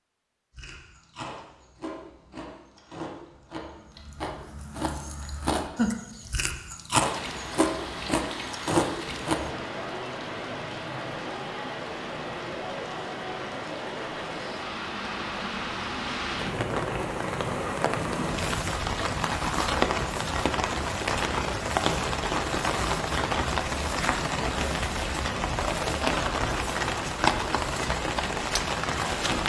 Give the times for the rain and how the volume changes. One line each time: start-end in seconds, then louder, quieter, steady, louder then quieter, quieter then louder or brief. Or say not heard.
7.0-29.4 louder.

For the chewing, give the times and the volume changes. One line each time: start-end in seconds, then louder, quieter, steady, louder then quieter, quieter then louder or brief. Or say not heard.
0.5-9.5 louder.